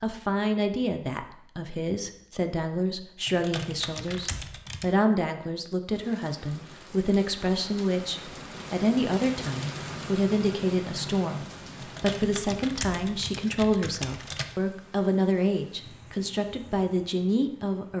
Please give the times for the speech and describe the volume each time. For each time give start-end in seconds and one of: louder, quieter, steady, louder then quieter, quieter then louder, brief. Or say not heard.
0.0-17.9 steady.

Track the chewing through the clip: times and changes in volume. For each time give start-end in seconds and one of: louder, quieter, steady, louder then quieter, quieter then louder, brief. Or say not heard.
not heard.